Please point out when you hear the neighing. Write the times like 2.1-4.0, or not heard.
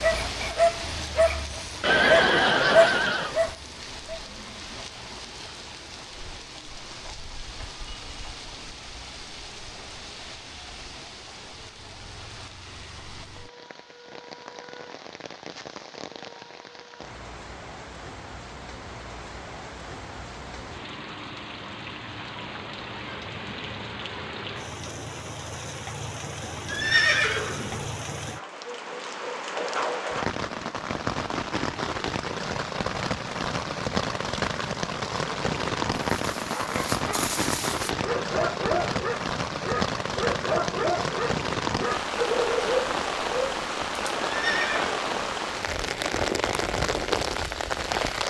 1.8-3.4, 26.6-27.9, 44.2-45.4.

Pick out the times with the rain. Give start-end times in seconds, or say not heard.
0.0-48.2.